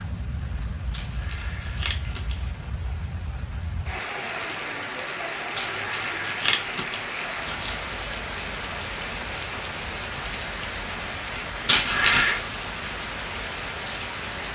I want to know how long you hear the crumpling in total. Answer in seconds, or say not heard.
5 s.